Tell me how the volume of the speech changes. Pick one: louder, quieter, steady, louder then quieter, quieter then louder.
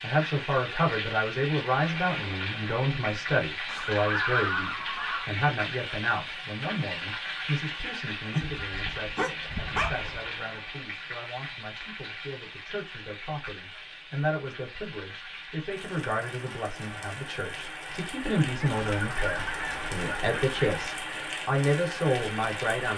quieter then louder.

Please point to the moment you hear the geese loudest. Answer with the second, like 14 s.
4 s.